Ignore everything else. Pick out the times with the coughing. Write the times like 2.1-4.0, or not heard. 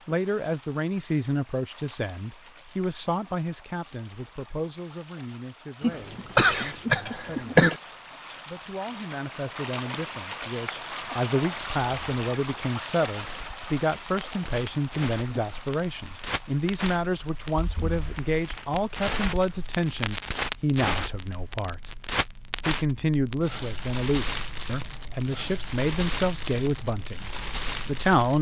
5.8-7.8.